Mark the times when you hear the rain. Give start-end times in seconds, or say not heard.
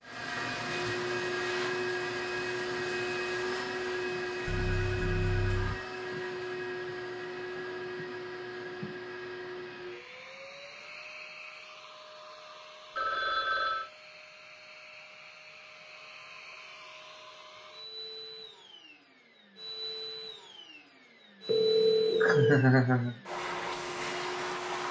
not heard.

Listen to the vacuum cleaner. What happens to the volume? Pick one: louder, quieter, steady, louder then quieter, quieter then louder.
quieter then louder.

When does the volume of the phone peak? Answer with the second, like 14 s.
22 s.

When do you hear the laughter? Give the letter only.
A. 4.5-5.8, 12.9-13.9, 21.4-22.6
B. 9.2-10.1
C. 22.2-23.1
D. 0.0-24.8
C.